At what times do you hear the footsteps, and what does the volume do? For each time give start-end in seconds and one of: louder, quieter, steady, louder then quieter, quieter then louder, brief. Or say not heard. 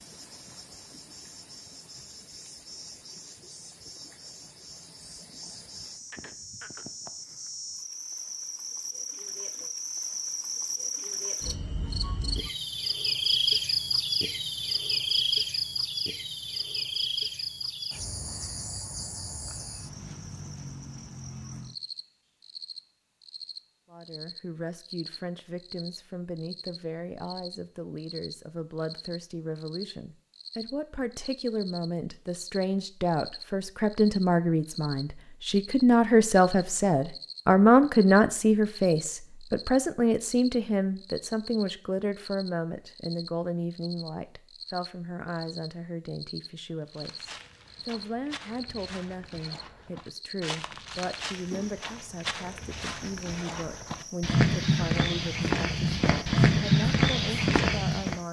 46.9-58.1 louder.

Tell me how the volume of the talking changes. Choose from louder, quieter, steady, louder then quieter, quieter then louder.
louder then quieter.